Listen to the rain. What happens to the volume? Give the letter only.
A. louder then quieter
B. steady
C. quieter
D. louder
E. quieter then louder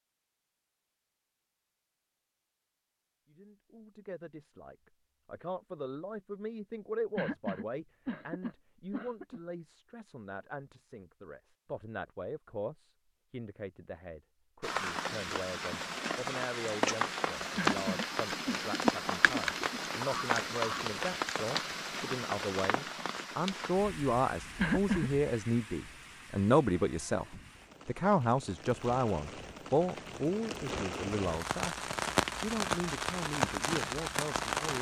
E.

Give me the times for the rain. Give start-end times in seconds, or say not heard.
14.6-34.7.